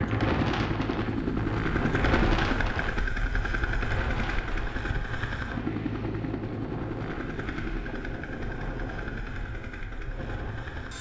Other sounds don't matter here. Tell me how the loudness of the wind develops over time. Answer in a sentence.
The loudness of the wind goes down.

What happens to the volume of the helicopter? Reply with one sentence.
The loudness of the helicopter goes down.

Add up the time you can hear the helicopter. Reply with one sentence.
You can hear the helicopter for 11 seconds altogether.